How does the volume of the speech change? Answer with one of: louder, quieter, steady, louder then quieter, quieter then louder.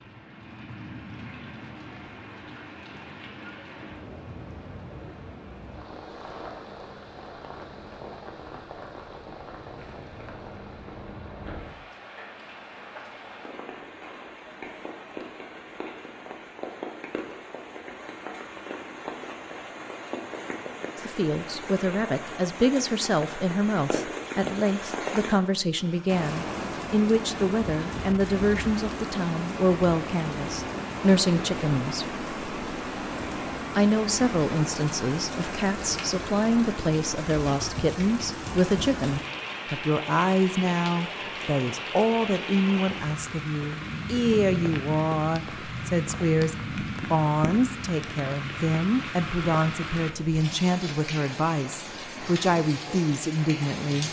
steady.